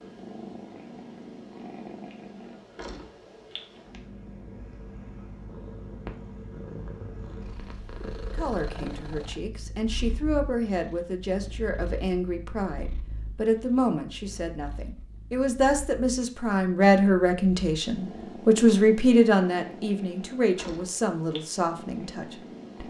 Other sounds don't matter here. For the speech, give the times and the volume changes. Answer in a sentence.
The speech can be heard from 8.3 to 22.8 s, getting louder then quieter.